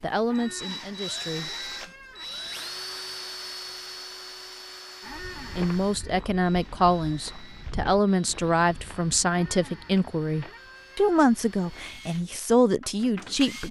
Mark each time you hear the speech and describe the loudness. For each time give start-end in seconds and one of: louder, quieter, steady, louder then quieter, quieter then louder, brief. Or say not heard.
0.0-1.5 brief
5.5-13.6 steady.